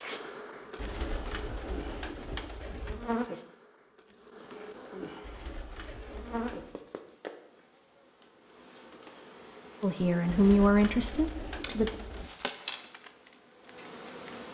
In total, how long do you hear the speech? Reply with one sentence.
You can hear the speech for 2 seconds altogether.